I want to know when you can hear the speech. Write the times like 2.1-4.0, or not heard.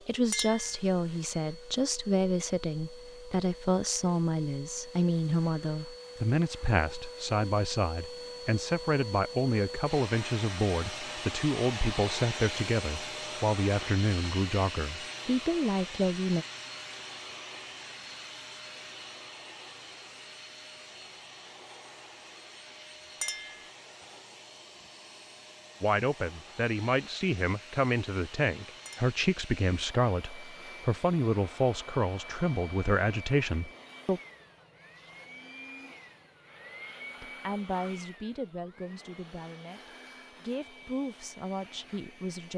0.1-16.4, 25.8-34.2, 37.2-42.5.